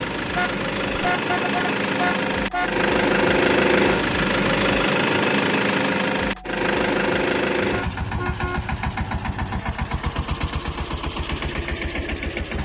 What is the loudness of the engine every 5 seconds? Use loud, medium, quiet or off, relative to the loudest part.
loud, loud, medium.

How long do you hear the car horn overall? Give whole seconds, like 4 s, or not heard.
4 s.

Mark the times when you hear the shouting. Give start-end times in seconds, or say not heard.
not heard.